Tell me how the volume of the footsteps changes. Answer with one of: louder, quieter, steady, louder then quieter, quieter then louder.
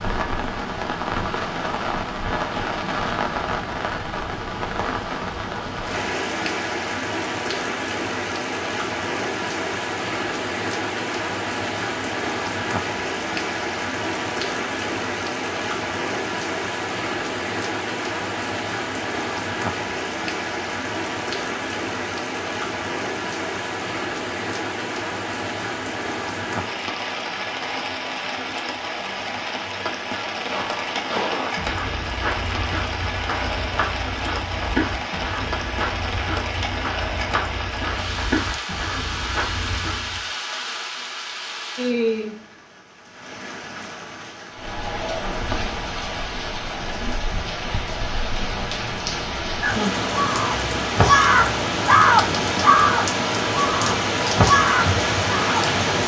steady.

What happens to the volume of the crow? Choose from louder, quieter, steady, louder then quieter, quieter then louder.
quieter then louder.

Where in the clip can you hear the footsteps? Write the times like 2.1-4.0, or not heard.
30.4-40.2.